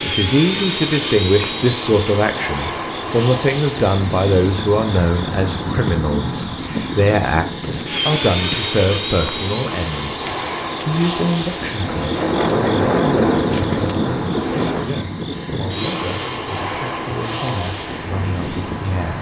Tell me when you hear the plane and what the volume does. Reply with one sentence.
You can hear the plane from 0.0 to 19.1 s, at a steady volume.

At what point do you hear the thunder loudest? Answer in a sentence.
The loudest moment of the thunder is at 13 seconds.